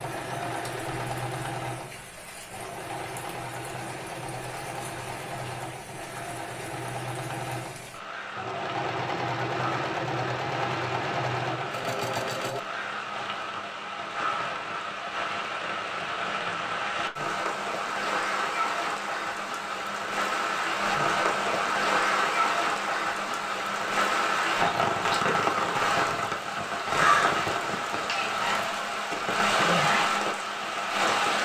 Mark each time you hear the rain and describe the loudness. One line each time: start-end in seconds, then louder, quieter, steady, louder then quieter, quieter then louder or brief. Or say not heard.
0.0-31.3 louder.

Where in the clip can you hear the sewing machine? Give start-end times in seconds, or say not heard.
0.0-12.6.